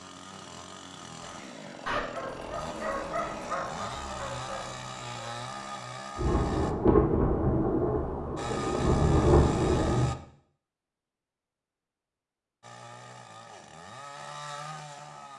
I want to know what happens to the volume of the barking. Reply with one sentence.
The volume of the barking goes down.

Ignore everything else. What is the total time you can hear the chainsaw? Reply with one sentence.
The chainsaw can be heard for 11 seconds in total.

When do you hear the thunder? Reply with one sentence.
The thunder can be heard from 6.2 to 10.1 s.